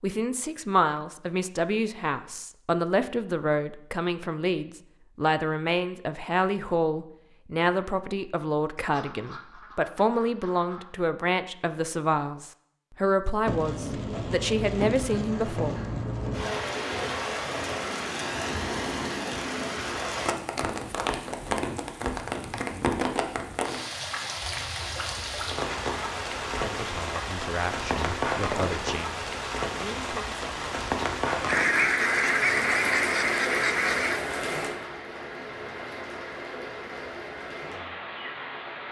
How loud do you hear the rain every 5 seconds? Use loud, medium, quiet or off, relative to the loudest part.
off, off, loud, loud, loud, loud, loud, medium.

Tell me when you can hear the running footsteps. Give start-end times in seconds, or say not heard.
not heard.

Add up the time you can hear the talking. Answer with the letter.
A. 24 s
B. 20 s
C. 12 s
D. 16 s
B.